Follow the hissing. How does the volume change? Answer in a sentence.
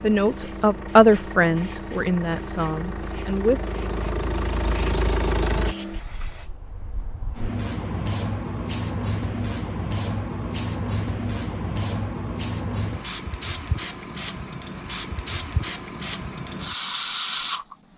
The volume of the hissing goes up.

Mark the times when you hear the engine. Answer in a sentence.
The engine can be heard from 0.0 to 5.8 s.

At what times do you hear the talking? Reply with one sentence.
You can hear the talking from 0.0 to 3.6 s.